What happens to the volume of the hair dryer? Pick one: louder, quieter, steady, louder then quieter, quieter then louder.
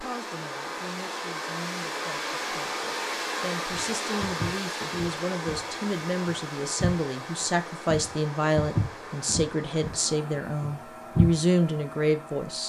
quieter.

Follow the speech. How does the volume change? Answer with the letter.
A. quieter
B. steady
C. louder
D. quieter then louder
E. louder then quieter
C.